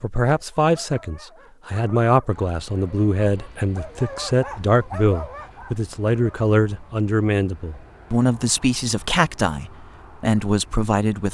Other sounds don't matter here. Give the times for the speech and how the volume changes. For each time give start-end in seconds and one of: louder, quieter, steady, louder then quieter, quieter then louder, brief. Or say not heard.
0.0-11.2 steady.